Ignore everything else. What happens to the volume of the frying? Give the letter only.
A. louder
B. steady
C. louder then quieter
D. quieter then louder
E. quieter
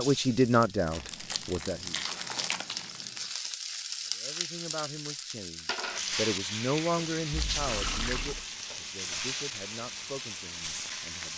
A.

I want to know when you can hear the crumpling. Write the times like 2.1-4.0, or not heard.
0.8-3.3, 6.9-8.3.